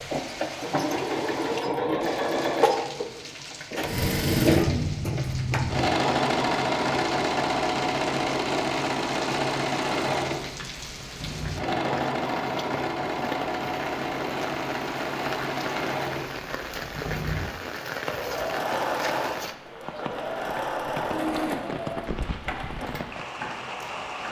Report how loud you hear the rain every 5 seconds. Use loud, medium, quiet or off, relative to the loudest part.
medium, medium, loud, loud, loud.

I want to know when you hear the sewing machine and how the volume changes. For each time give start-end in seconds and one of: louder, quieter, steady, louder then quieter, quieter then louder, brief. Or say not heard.
0.0-24.2 quieter.